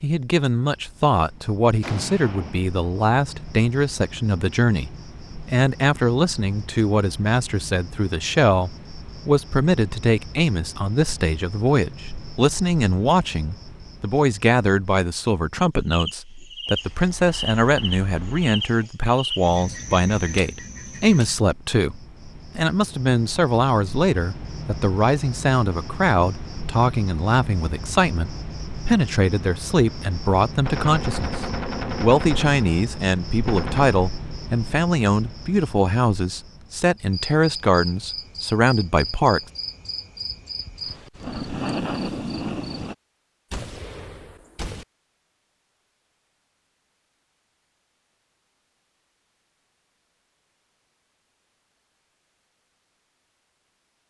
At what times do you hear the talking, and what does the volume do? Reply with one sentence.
The talking can be heard from 0.0 to 39.4 s, at a steady volume.